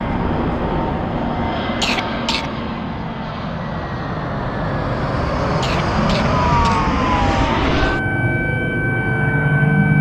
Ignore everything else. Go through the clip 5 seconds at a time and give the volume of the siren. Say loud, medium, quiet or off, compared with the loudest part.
off, loud.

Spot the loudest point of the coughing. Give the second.
2 s.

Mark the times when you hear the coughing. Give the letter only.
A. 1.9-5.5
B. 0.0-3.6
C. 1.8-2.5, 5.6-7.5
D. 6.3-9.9
C.